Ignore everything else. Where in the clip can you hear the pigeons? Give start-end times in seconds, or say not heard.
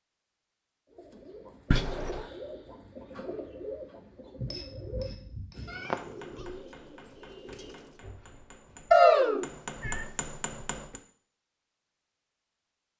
0.8-8.0.